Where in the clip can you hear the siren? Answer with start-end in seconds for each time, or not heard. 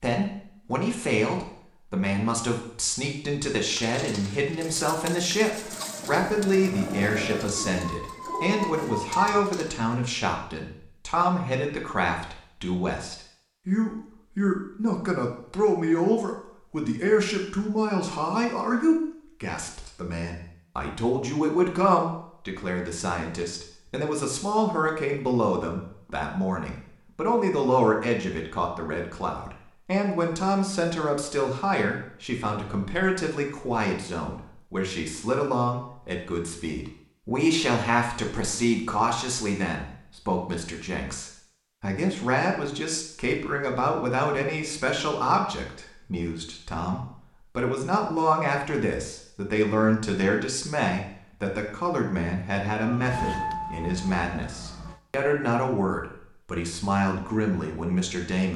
5.5-9.5, 52.8-55.0.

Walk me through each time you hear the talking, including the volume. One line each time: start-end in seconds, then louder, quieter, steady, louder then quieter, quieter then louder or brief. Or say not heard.
0.0-58.5 steady.